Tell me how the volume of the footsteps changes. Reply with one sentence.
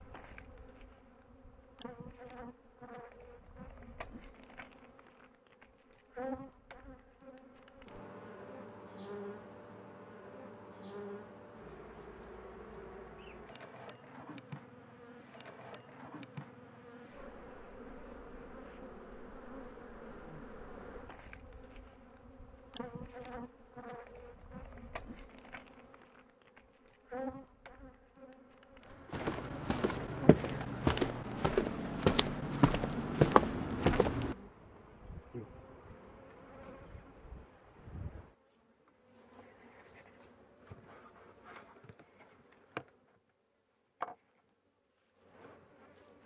The volume of the footsteps goes up.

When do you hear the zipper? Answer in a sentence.
The zipper can't be heard in this clip.